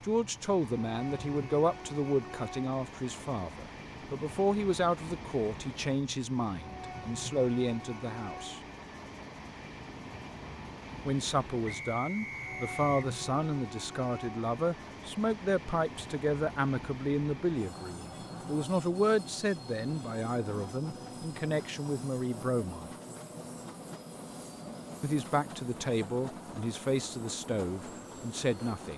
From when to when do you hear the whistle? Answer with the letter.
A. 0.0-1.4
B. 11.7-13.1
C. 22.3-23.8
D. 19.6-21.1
B.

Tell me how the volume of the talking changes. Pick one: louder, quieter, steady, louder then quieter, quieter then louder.
steady.